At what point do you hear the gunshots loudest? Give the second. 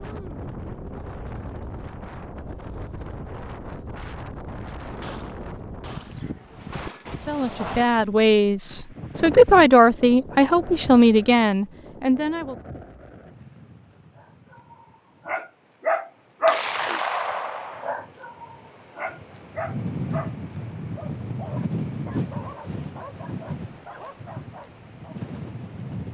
17 s.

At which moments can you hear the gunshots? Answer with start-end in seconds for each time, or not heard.
5.0-8.7, 16.4-17.9.